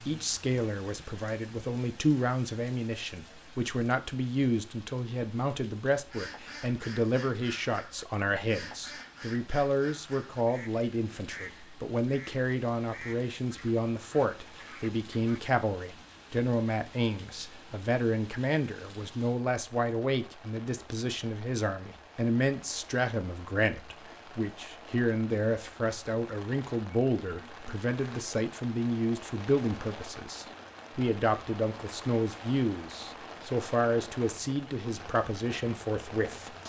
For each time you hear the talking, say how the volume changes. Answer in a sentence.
You can hear the talking from 0.0 to 36.5 s, at a steady volume.